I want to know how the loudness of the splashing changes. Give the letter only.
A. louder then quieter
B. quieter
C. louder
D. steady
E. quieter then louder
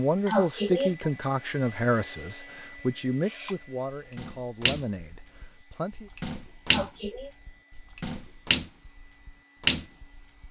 E.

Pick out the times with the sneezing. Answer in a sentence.
You can hear the sneezing from 0.2 to 1.1 s and from 6.7 to 7.3 s.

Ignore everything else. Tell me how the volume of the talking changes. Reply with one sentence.
The volume of the talking goes down.